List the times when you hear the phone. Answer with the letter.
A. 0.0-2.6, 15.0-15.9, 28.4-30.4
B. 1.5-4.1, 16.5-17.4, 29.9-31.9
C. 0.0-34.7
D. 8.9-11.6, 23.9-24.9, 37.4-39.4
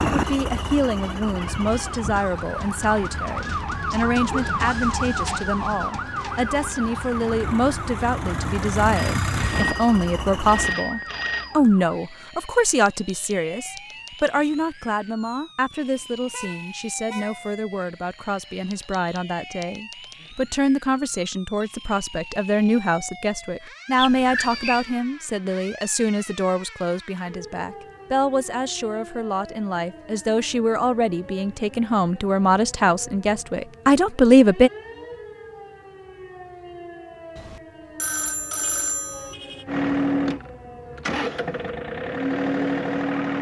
D.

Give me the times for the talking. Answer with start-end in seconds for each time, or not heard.
0.0-34.7.